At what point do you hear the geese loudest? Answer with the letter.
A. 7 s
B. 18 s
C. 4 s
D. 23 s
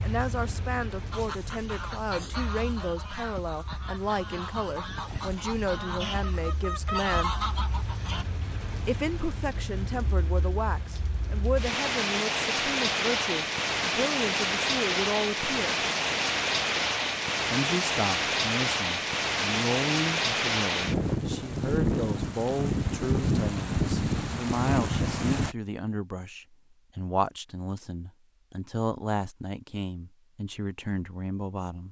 A.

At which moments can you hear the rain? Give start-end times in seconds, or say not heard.
0.0-25.6.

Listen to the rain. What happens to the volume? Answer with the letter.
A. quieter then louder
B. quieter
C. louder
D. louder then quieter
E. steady
C.